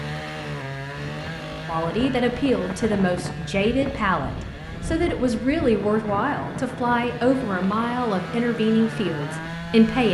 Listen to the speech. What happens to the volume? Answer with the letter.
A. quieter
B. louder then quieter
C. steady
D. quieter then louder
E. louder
C.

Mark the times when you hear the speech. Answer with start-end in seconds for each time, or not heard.
1.6-10.0.